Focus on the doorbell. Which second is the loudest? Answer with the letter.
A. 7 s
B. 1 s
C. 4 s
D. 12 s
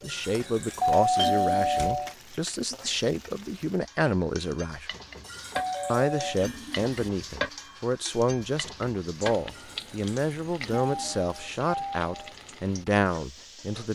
B.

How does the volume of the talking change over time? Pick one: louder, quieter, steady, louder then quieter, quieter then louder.
steady.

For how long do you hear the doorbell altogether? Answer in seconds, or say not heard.
4 s.